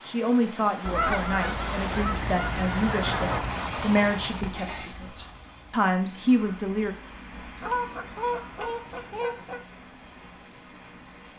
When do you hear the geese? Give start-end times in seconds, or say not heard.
0.8-3.5, 7.6-9.6.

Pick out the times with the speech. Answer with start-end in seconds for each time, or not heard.
0.1-7.0.